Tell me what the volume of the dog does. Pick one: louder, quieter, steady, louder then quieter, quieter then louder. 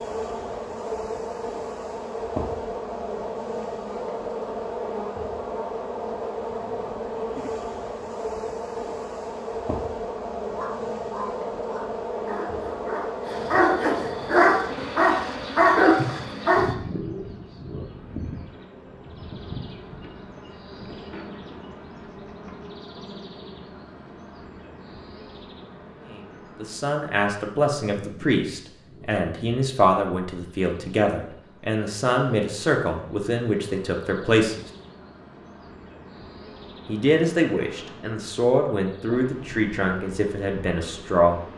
louder.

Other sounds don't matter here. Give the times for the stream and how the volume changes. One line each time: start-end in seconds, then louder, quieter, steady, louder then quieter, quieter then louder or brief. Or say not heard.
not heard.